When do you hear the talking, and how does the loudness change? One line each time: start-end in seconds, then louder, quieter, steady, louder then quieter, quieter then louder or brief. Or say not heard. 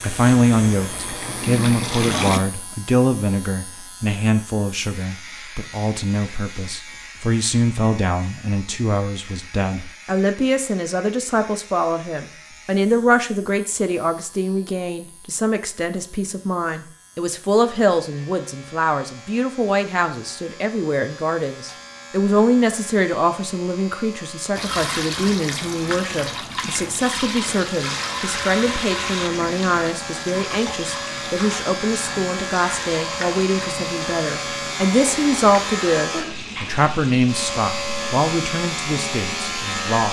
0.0-40.0 steady.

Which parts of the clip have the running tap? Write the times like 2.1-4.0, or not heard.
0.0-2.4, 24.6-39.9.